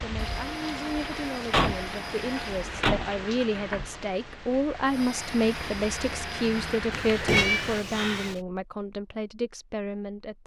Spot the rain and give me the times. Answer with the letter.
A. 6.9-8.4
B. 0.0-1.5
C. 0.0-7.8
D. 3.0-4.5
C.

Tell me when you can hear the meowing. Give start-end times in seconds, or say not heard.
6.9-8.4.